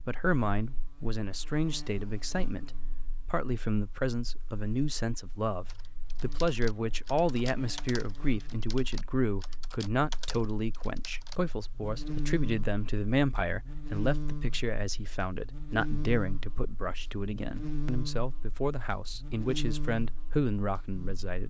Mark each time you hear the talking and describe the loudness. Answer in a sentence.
The talking can be heard from 0.1 to 21.4 s, at a steady volume.